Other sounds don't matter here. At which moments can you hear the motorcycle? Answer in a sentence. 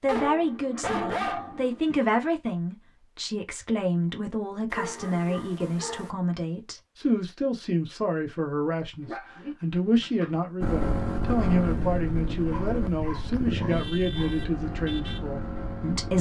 You can hear the motorcycle from 10.6 to 16.1 s.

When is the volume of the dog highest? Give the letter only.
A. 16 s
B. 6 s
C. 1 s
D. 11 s
C.